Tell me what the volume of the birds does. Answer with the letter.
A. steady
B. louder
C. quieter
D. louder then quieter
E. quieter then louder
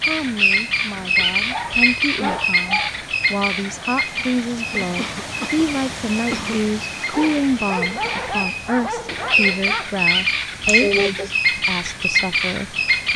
E.